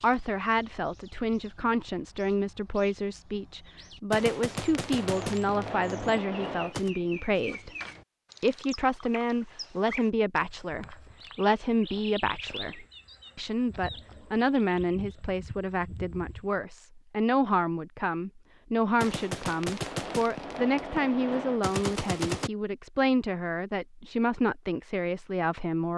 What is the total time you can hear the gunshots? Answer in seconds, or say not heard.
6 s.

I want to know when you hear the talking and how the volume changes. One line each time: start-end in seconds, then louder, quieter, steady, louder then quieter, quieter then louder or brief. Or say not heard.
0.0-7.7 steady
8.4-25.9 steady.